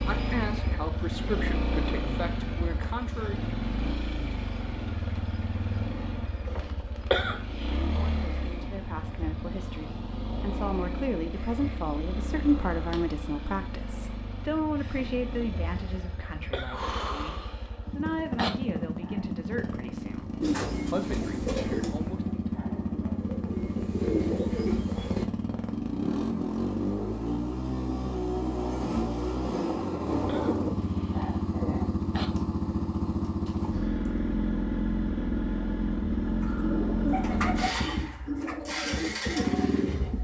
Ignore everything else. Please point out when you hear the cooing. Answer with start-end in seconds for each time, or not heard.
20.4-25.2, 36.4-40.1.